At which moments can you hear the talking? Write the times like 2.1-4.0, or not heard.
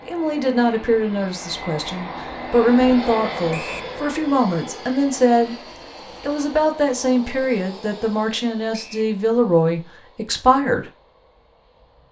0.1-5.5, 6.2-10.9.